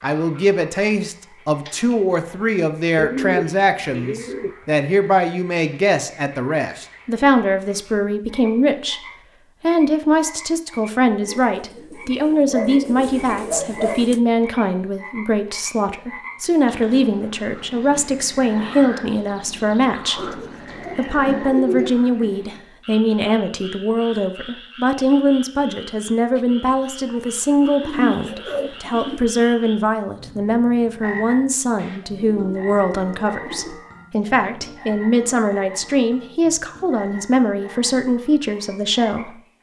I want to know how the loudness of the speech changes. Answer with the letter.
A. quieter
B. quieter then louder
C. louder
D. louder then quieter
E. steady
E.